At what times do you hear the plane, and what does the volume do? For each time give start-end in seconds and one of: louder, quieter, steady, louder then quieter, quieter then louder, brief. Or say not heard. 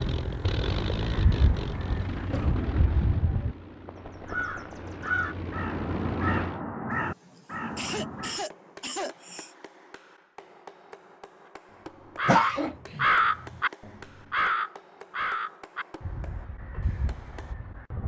0.0-6.6 quieter then louder.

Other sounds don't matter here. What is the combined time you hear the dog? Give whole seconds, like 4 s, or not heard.
not heard.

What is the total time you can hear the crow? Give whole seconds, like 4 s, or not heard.
14 s.